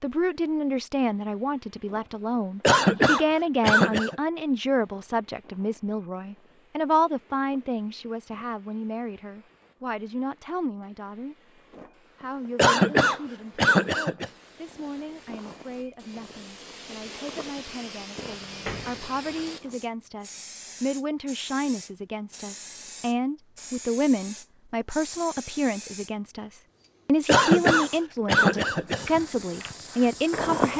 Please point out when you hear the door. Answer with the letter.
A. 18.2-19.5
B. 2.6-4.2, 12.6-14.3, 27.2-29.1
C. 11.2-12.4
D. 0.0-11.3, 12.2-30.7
A.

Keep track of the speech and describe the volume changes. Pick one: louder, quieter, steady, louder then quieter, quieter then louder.
quieter then louder.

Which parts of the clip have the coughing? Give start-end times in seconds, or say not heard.
2.6-4.2, 12.6-14.3, 27.2-29.1.